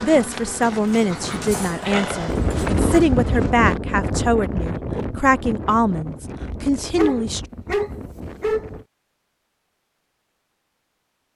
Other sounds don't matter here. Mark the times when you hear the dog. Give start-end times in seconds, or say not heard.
0.6-3.1, 7.0-8.8.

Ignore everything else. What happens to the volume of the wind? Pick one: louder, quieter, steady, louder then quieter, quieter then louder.
louder then quieter.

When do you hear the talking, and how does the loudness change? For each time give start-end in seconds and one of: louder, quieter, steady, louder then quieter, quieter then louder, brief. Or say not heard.
0.0-7.4 steady.